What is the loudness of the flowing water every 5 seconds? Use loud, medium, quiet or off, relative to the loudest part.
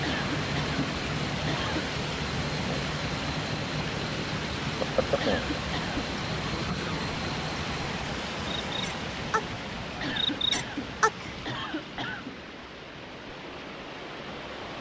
loud, loud, medium.